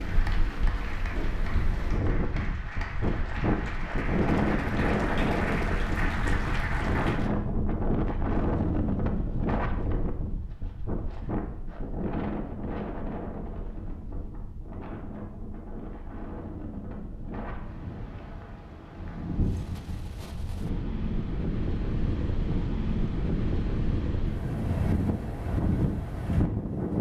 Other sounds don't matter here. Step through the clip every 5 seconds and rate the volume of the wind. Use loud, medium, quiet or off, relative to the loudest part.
loud, loud, medium, medium, loud, loud.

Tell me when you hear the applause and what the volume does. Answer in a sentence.
The applause can be heard from 0.0 to 7.3 s, getting louder.